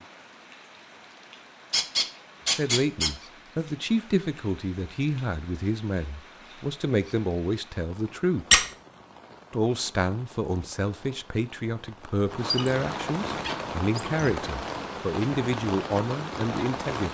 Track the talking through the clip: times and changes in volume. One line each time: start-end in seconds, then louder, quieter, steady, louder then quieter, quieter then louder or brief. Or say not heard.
2.5-8.4 steady
9.5-17.1 steady.